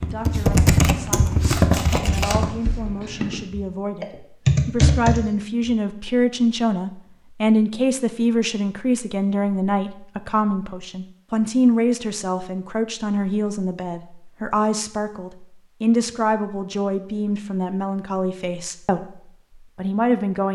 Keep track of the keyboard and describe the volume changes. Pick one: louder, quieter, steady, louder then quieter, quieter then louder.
quieter then louder.